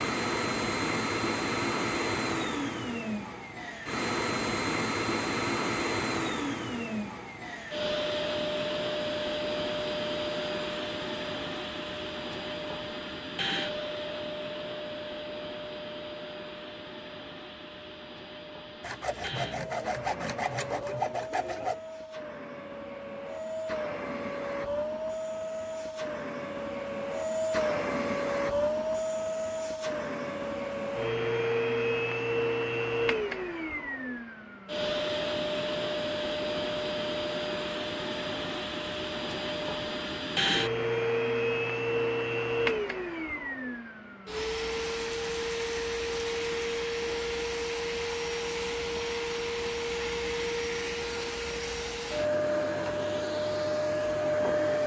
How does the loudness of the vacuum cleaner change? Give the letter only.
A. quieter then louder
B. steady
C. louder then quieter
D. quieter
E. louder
A.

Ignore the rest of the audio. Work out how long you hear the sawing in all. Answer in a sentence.
The sawing can be heard for 3 seconds in total.